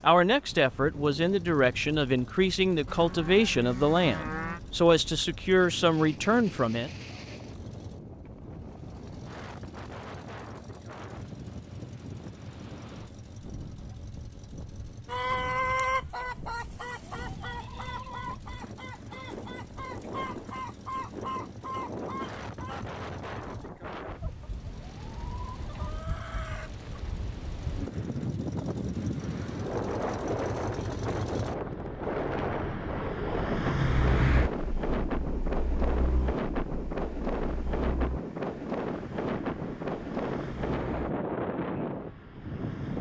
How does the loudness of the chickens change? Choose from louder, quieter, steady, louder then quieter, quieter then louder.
quieter.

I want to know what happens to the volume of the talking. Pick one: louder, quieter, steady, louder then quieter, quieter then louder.
steady.